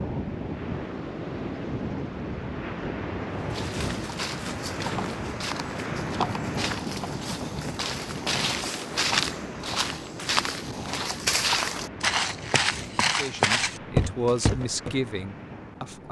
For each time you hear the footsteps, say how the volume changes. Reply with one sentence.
You can hear the footsteps from 3.4 to 14.9 s, getting louder.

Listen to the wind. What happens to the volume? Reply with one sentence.
The loudness of the wind goes down.